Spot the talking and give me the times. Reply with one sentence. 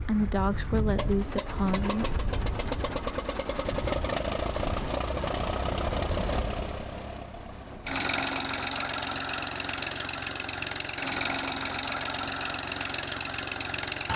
You can hear the talking from 0.0 to 2.1 s.